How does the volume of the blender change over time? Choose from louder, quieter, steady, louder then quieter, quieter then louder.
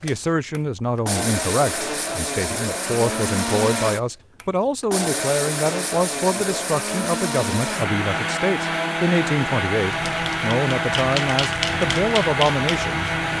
steady.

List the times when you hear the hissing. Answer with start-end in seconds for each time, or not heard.
9.8-13.3.